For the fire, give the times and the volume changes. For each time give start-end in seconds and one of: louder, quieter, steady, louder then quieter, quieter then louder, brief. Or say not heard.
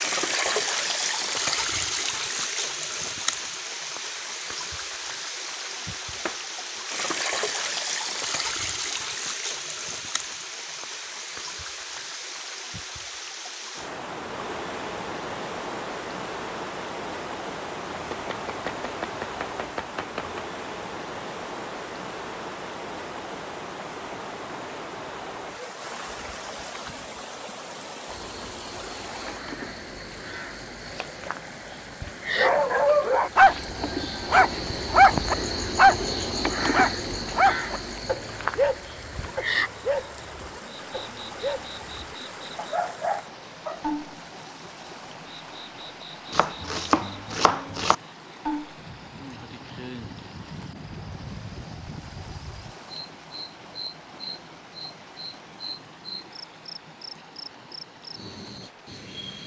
not heard.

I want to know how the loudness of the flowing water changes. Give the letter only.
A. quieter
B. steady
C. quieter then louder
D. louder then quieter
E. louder
A.